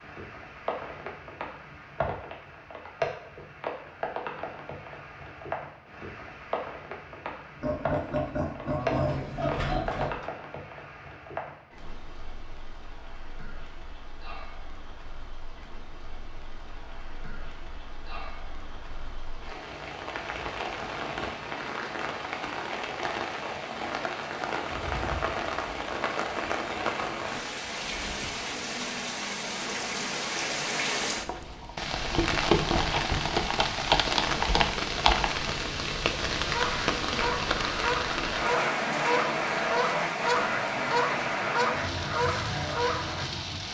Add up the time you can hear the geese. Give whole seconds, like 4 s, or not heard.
7 s.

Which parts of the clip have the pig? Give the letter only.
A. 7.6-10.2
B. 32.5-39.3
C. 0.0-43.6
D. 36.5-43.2
A.